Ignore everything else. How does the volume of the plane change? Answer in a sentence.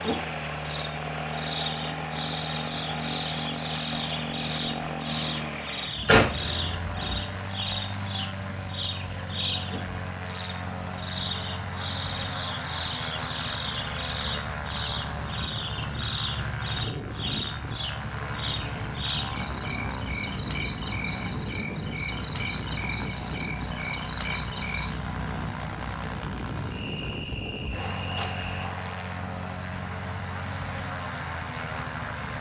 The loudness of the plane stays about the same.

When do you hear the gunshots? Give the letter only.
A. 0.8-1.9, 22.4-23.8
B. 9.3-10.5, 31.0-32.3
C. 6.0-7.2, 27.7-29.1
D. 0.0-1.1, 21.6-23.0
C.